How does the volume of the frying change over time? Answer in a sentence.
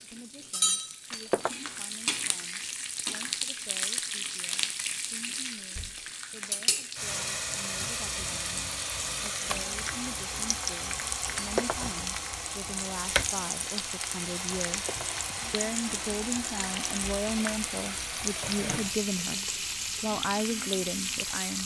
The volume of the frying stays about the same.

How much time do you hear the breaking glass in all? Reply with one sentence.
The breaking glass can be heard for 2 seconds in total.